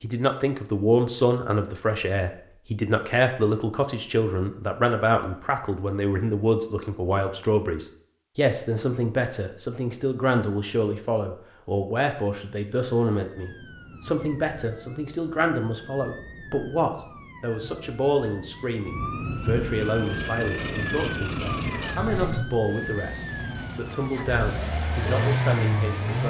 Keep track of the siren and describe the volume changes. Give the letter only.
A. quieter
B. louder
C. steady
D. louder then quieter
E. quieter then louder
D.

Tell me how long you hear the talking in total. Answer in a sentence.
The talking can be heard for 26 seconds in total.